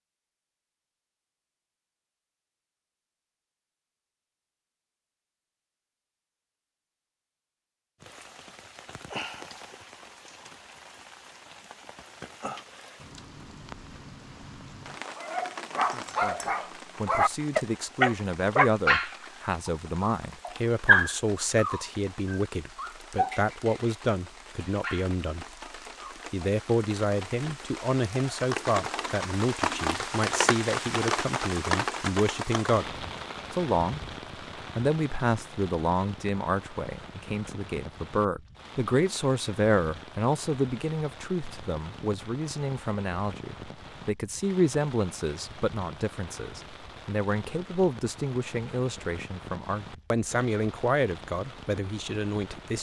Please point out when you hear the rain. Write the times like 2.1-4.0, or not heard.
8.0-52.7.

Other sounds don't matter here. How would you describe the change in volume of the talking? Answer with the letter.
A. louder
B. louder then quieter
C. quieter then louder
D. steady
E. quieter
D.